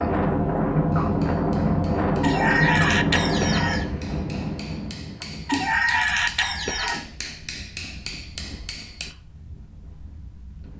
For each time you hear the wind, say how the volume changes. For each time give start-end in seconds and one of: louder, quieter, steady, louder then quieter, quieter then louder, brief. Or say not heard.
0.0-10.7 quieter.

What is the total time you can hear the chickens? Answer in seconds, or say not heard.
3 s.